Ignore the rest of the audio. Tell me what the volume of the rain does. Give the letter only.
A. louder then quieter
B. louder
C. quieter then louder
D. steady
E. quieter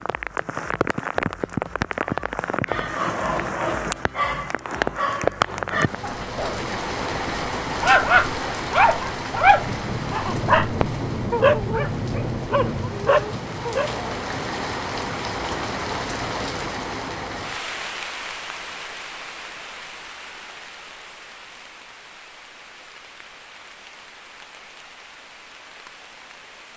E.